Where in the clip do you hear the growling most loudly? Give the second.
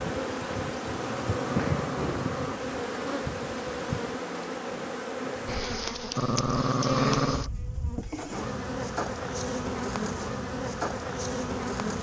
7 s.